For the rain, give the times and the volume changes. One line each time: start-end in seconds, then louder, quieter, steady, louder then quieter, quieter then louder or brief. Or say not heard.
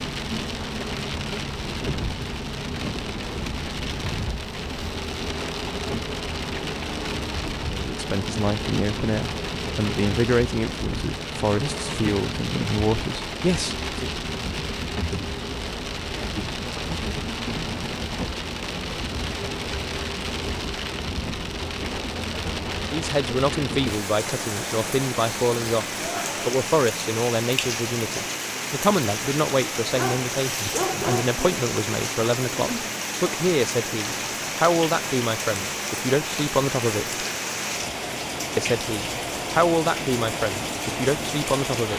0.0-41.9 steady.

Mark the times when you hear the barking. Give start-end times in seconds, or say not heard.
29.9-31.6.